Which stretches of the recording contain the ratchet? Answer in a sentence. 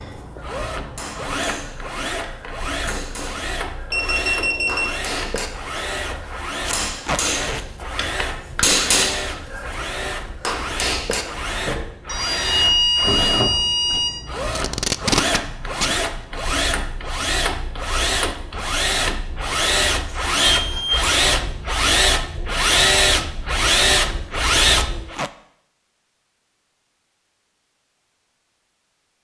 You can't hear the ratchet here.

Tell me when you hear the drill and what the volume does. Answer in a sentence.
You can hear the drill from 0.0 to 25.2 s, getting louder.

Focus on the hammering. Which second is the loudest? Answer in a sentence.
The loudest moment of the hammering is at 9 seconds.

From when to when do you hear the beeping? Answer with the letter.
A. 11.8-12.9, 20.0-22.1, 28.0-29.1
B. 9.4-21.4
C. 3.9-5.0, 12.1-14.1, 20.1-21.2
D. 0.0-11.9
C.